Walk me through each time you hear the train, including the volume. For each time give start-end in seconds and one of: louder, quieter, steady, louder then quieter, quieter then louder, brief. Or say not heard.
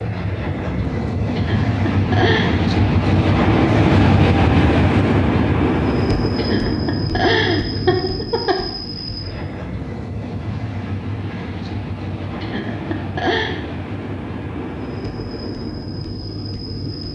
0.0-17.1 quieter.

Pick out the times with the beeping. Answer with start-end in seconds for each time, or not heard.
not heard.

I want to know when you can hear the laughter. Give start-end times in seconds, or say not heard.
1.4-2.6, 6.3-8.7, 12.4-13.6.